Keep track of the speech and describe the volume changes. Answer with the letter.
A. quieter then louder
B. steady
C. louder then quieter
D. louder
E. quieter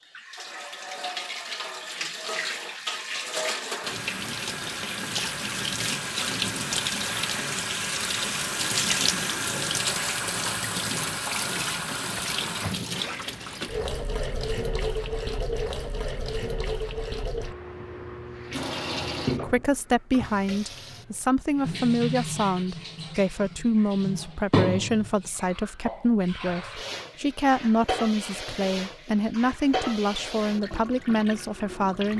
B.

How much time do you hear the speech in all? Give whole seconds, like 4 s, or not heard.
13 s.